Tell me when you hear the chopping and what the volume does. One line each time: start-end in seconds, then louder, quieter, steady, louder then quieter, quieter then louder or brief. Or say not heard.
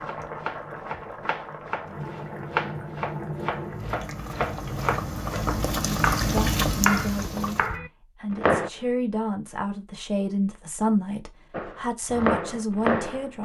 0.0-8.7 louder
11.5-13.4 brief.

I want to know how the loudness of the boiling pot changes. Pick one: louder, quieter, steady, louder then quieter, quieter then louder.
louder.